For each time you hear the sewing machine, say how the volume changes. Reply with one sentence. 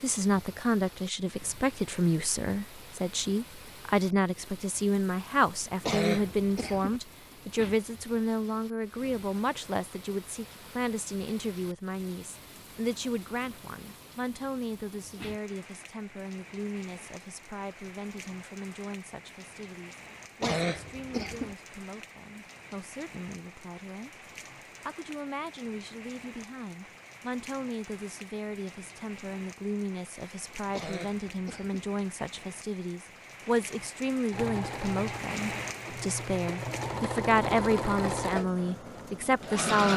The sewing machine can be heard from 34.3 to 39.9 s, getting louder then quieter.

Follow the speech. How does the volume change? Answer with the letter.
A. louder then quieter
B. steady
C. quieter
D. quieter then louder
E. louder
D.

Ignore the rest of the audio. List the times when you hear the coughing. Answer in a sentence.
The coughing can be heard from 5.8 to 7.0 s, from 20.4 to 21.6 s and from 30.7 to 31.9 s.